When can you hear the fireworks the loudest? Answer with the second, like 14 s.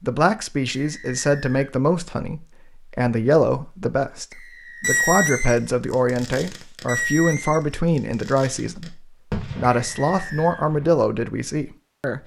5 s.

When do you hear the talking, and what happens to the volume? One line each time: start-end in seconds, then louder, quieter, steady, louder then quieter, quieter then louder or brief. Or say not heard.
0.0-12.2 steady.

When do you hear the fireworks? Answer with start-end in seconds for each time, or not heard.
4.8-10.9.